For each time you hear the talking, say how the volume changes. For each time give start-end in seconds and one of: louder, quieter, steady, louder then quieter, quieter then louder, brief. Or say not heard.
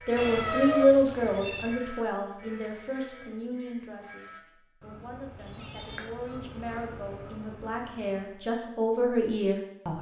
0.1-9.9 quieter then louder.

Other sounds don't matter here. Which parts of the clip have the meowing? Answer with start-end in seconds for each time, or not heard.
0.1-1.8, 5.4-6.1.